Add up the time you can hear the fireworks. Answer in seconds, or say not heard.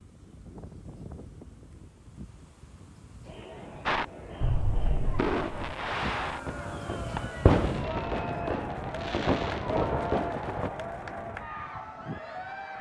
7 s.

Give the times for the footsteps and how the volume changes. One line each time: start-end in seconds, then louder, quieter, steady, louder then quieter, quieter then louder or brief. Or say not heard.
not heard.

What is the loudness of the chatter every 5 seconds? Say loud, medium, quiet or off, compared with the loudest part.
medium, loud, loud.